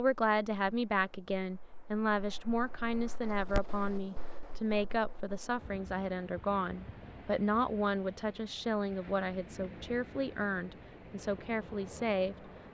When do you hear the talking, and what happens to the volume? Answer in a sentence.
The talking can be heard from 0.0 to 12.5 s, at a steady volume.